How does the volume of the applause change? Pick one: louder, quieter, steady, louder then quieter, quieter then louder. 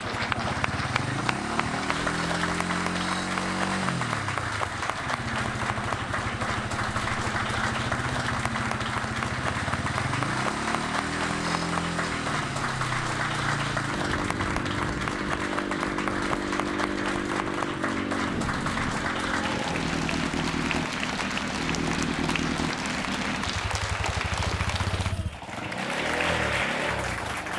steady.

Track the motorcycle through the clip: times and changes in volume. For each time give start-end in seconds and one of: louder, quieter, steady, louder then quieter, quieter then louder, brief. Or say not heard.
0.0-27.5 steady.